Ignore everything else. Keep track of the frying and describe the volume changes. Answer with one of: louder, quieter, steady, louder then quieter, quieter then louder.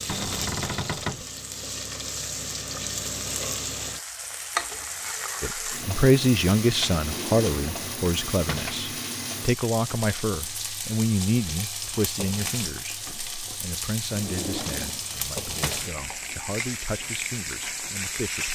steady.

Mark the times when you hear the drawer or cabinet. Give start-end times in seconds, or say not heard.
0.1-1.2, 7.0-8.7, 14.1-15.8.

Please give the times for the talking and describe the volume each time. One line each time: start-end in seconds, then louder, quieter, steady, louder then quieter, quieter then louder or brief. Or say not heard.
5.4-18.5 quieter.